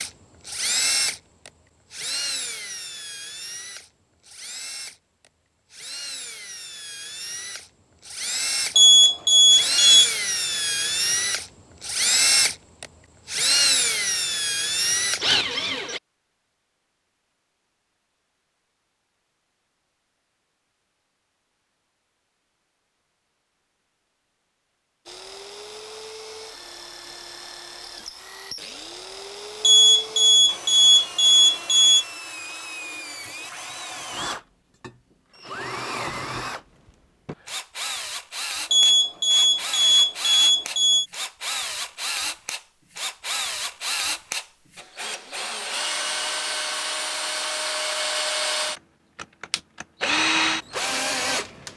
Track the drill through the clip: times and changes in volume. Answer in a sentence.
The drill can be heard from 0.0 to 16.0 s, getting quieter then louder; and from 25.1 to 51.7 s, getting louder.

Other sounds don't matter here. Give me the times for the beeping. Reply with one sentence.
The beeping can be heard from 8.8 to 10.1 s, from 29.6 to 32.0 s and from 38.7 to 41.0 s.